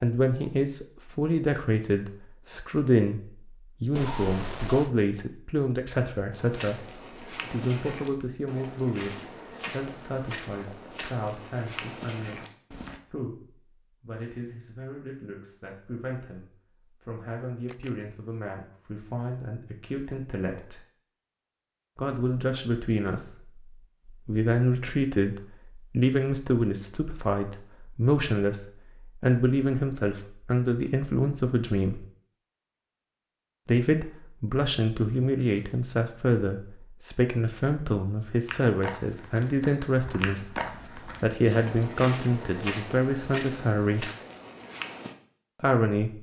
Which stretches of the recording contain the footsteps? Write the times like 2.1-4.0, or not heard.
6.3-13.0, 38.5-45.1.